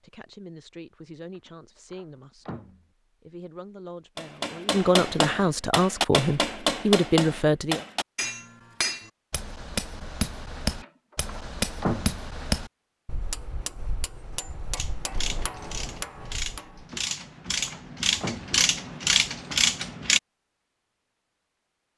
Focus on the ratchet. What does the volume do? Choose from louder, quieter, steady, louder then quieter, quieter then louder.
louder.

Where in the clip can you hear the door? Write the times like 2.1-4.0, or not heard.
1.4-2.9, 10.7-12.2, 17.1-18.6.